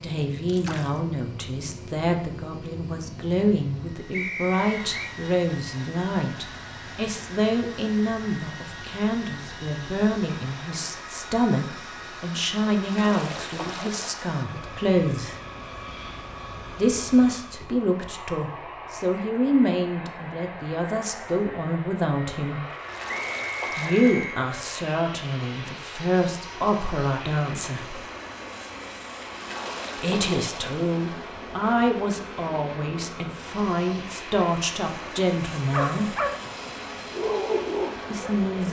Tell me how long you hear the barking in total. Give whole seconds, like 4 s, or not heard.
3 s.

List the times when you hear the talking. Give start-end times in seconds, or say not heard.
0.0-15.3, 16.8-22.6, 23.8-28.0, 29.9-36.1, 38.1-38.6.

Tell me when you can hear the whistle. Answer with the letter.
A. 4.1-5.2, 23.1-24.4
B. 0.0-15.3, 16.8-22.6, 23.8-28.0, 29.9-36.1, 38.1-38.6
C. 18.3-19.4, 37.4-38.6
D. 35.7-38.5
A.